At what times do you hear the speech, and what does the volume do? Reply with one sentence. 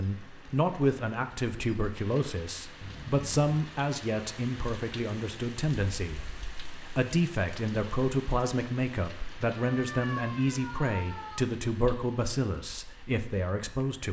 The speech can be heard from 0.0 to 14.0 s, at a steady volume.